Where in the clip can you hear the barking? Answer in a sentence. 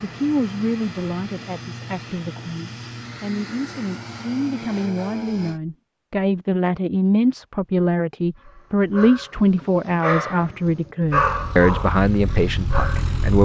You can hear the barking from 8.4 to 13.2 s.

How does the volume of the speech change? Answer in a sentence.
The volume of the speech goes up.